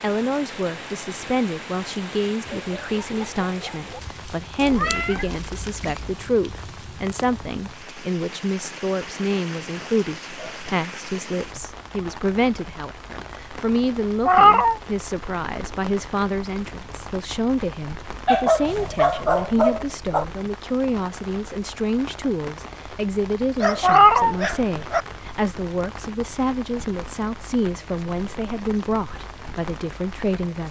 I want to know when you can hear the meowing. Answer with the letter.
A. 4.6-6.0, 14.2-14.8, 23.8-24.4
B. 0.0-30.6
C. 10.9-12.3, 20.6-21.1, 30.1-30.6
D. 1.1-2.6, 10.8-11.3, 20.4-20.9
A.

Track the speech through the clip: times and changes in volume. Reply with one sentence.
The speech can be heard from 0.0 to 30.6 s, at a steady volume.